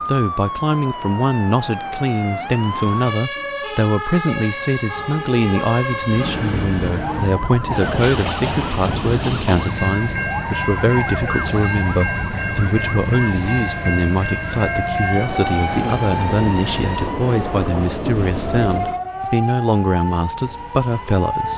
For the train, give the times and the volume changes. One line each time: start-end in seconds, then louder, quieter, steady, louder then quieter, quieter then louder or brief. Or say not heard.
6.0-19.0 steady.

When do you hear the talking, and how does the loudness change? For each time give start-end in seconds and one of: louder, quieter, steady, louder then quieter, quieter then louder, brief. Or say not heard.
0.0-21.5 steady.